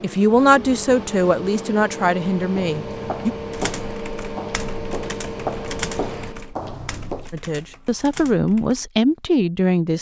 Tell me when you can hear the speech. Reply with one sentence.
You can hear the speech from 0.0 to 3.3 s and from 7.3 to 9.9 s.